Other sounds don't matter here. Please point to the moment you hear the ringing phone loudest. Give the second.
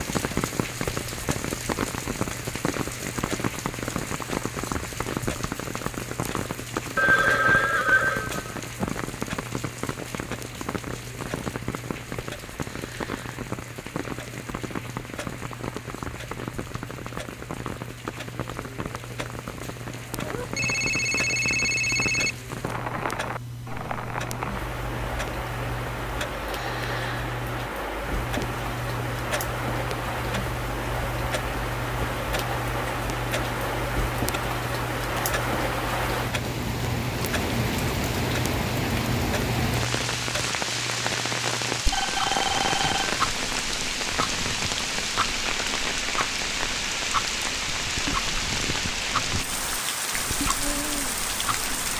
7 s.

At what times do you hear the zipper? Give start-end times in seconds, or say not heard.
19.9-20.5.